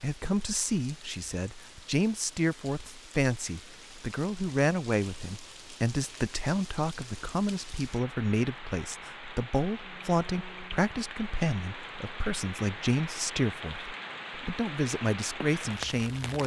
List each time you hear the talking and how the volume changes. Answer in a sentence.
The talking can be heard from 0.0 to 16.4 s, at a steady volume.